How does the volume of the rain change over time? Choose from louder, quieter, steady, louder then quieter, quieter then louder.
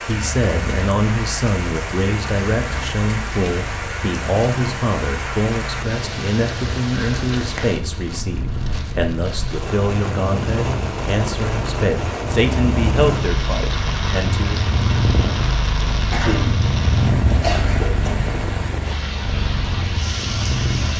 steady.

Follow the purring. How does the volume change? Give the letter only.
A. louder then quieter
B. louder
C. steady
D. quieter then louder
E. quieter
B.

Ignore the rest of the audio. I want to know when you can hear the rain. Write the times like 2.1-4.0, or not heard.
0.0-20.9.